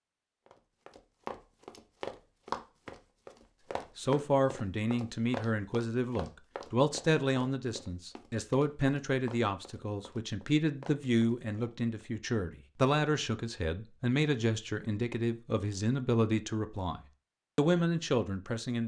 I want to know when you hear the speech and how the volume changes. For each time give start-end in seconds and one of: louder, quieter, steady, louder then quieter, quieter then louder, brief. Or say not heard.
4.0-18.8 steady.